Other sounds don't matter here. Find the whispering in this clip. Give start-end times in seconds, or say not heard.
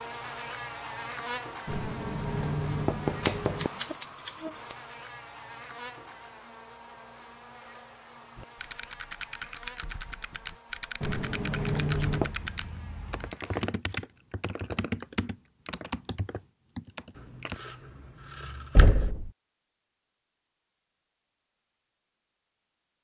not heard.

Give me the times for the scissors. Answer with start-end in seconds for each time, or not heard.
3.2-4.8, 11.9-13.3, 17.1-19.1.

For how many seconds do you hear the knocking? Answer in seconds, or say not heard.
4 s.